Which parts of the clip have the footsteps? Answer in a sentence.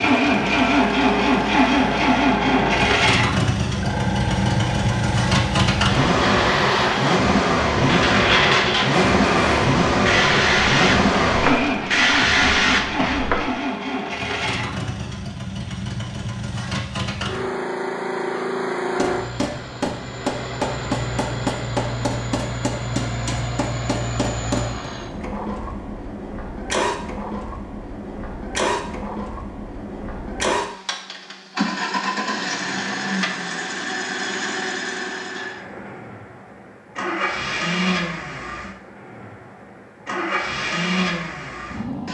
You can't hear the footsteps here.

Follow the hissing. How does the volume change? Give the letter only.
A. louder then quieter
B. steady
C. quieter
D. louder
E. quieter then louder
D.